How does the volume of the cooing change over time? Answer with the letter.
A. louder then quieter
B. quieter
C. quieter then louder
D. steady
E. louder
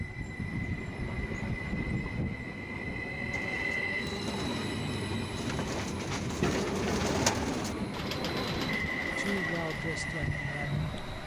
A.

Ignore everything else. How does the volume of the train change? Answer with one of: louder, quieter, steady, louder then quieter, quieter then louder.
steady.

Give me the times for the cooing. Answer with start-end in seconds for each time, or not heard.
3.3-9.9.